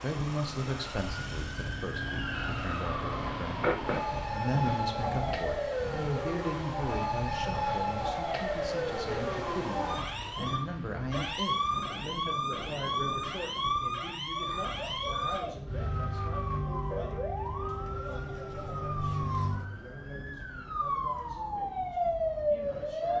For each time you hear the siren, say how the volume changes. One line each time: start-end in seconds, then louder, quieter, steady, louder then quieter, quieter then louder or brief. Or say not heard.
0.0-23.1 steady.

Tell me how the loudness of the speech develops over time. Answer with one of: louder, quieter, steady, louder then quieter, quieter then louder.
quieter.